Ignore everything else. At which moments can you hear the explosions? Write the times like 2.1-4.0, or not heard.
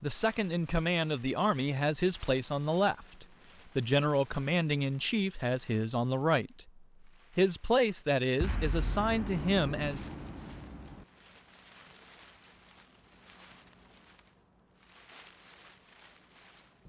8.4-11.1.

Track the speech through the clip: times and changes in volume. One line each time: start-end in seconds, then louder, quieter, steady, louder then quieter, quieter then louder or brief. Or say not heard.
0.0-10.0 steady.